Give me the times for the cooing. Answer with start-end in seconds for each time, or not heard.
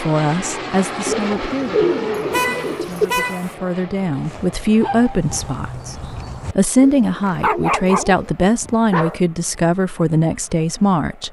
1.1-3.1, 6.8-8.3.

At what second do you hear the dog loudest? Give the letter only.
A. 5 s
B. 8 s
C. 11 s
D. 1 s
B.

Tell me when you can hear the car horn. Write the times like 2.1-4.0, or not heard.
2.3-3.5.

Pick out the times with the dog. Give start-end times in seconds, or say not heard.
4.2-6.5, 7.2-9.2.